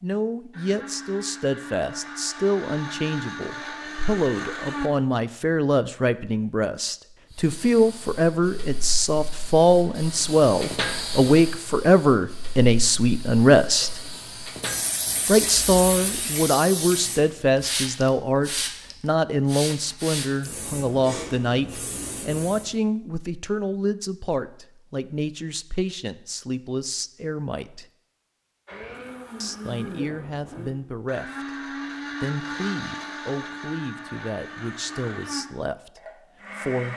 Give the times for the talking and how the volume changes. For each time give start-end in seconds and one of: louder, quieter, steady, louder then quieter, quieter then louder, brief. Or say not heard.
0.0-14.0 louder
15.2-27.9 quieter
29.4-36.9 steady.